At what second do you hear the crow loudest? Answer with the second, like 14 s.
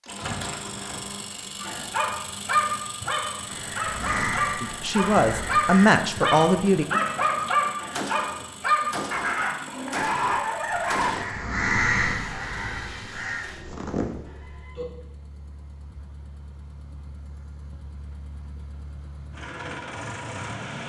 12 s.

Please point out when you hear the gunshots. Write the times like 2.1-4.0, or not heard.
7.9-11.2.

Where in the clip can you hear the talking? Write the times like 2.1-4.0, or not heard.
4.6-6.8.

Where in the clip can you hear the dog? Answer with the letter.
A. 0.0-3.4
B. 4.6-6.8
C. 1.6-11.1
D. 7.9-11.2
C.